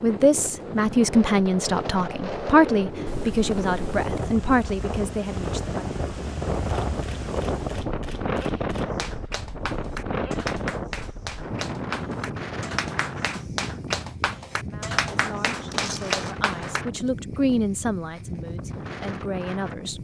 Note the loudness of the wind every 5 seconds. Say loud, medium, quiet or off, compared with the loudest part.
loud, loud, loud, medium.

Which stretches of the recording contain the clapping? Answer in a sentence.
The clapping can be heard from 8.9 to 16.9 s.